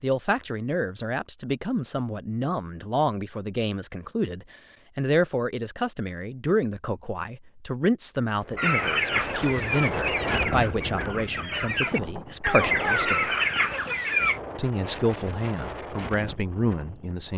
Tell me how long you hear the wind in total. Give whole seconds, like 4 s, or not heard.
9 s.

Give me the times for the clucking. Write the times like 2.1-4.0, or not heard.
8.6-14.4.